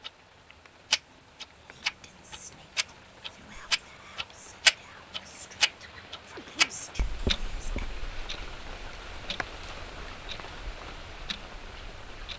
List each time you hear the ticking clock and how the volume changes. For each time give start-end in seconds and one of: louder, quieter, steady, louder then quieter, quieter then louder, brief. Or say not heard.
0.0-12.3 louder then quieter.